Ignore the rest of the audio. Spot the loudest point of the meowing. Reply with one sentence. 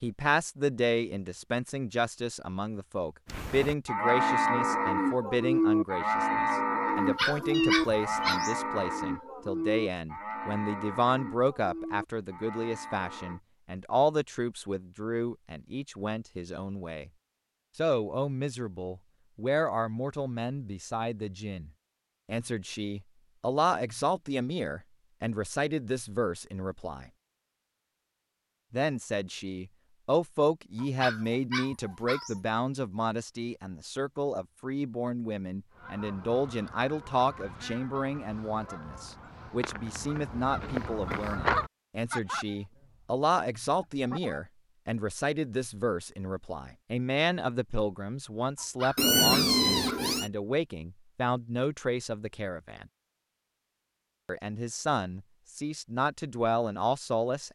The volume of the meowing peaks at 49 seconds.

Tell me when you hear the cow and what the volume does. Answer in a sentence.
The cow can be heard from 3.2 to 13.4 s, getting quieter.